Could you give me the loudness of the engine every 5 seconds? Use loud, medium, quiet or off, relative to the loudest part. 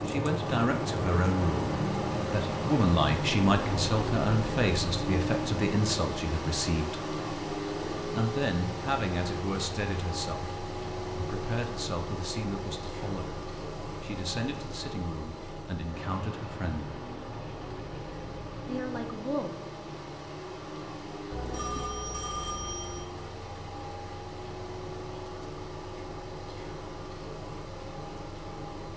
loud, loud, medium, medium, medium, medium.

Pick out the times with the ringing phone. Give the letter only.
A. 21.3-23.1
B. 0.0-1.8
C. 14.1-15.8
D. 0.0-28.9
A.